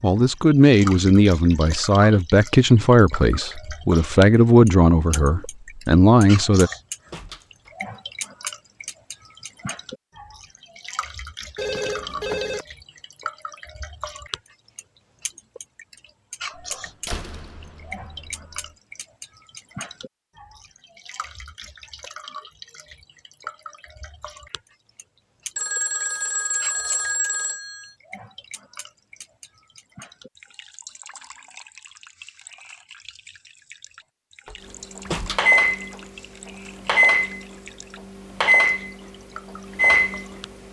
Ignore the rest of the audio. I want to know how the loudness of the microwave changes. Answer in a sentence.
The loudness of the microwave goes down, then up.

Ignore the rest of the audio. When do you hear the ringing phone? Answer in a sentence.
You can hear the ringing phone from 11.6 to 12.7 s and from 25.6 to 27.9 s.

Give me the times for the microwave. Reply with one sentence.
The microwave can be heard from 35.0 to 40.5 s.